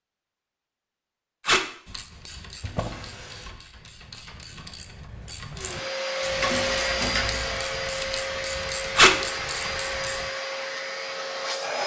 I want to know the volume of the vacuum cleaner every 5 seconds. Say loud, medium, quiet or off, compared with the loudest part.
off, loud, loud.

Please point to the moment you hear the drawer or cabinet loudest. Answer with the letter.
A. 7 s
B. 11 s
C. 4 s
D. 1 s
A.